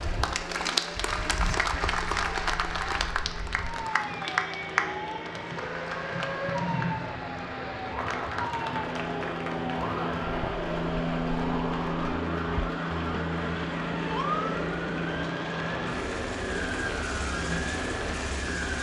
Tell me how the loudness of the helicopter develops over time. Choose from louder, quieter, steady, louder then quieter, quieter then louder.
louder.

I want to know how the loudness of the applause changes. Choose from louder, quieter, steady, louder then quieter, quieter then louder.
quieter.